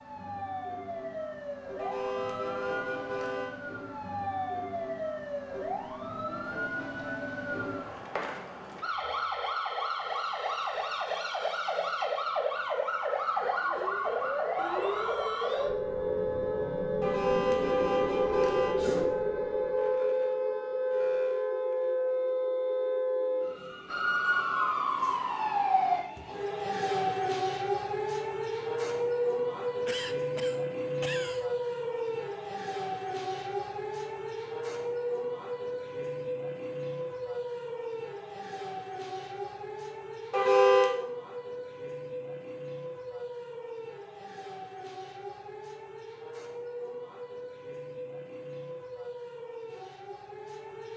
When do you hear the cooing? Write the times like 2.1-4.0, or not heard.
not heard.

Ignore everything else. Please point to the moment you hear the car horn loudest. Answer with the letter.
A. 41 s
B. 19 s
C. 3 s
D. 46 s
A.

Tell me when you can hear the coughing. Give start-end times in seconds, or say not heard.
29.9-31.4.